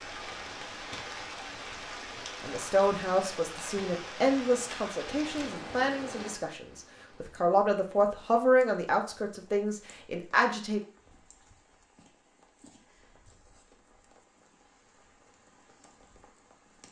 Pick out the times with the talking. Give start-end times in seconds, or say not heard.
2.4-10.8.